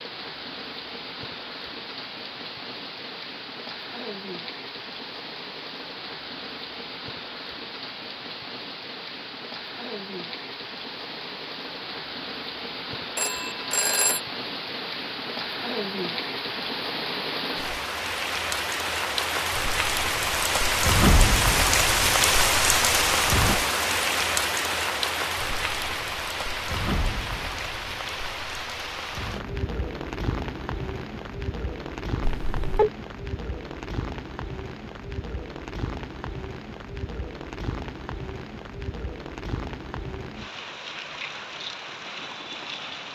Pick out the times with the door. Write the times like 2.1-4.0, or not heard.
not heard.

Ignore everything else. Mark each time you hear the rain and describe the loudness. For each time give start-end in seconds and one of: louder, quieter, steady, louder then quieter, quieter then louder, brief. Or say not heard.
0.0-43.0 louder then quieter.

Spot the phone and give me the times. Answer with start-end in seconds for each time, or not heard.
13.2-14.2, 32.4-32.9.